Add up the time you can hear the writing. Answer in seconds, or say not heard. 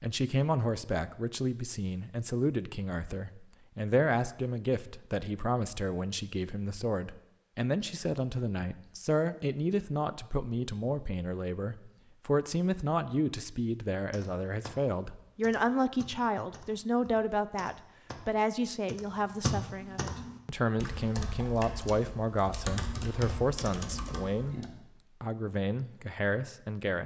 not heard.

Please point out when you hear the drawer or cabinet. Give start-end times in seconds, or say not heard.
not heard.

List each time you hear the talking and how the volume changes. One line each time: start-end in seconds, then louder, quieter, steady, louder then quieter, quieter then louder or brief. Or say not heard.
0.0-27.0 steady.